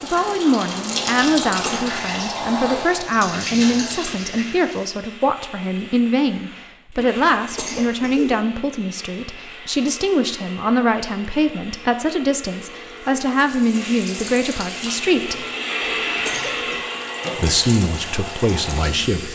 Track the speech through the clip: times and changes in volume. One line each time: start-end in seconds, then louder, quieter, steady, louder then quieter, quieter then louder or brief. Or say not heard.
0.0-15.4 steady
17.4-19.3 brief.